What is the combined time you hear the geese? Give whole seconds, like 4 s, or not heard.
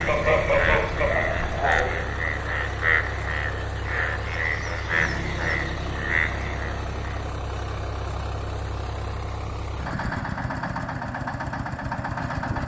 2 s.